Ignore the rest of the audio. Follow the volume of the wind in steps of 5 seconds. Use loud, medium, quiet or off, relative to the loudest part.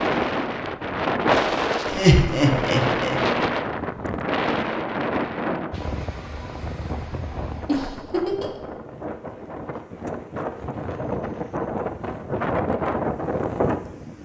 loud, medium, loud.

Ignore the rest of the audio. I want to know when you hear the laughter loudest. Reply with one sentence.
The volume of the laughter peaks at 2 seconds.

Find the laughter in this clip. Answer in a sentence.
The laughter can be heard from 1.9 to 3.1 s and from 7.7 to 8.6 s.